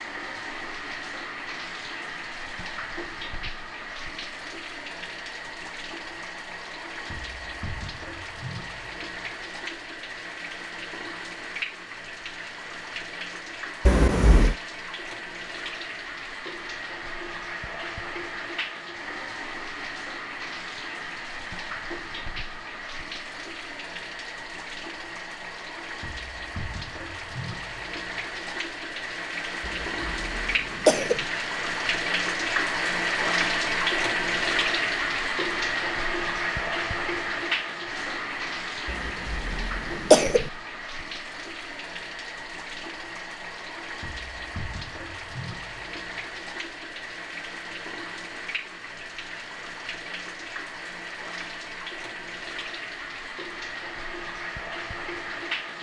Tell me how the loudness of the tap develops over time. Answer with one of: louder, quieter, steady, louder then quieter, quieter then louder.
louder then quieter.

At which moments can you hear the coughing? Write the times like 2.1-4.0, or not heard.
13.8-14.6, 29.6-31.2, 38.9-40.5.